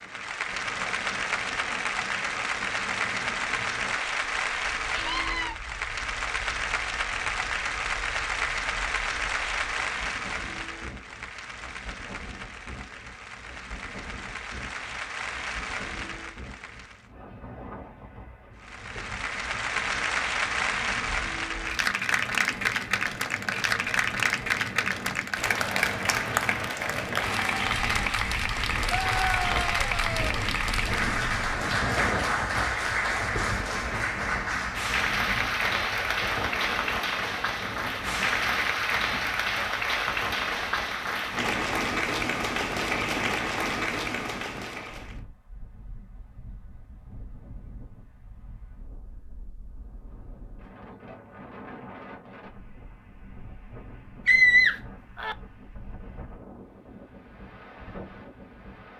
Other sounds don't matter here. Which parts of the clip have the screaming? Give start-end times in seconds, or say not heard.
4.9-5.5, 28.9-30.4, 54.2-55.4.